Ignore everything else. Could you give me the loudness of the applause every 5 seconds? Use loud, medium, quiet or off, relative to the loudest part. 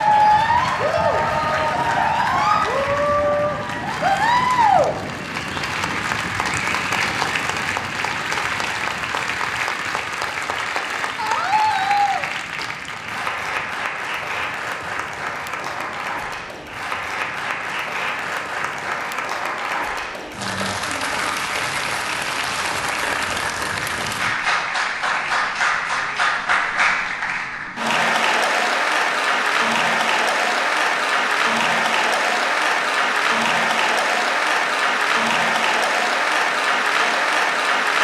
loud, medium, medium, medium, medium, loud, loud, loud.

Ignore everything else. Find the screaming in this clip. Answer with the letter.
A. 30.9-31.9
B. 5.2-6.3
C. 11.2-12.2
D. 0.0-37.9
C.